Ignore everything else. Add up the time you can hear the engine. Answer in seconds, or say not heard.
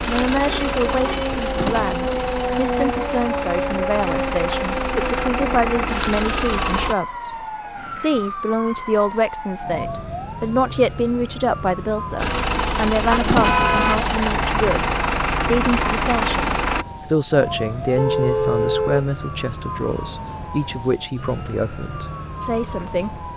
12 s.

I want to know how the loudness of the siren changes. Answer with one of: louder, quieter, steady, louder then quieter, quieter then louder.
quieter.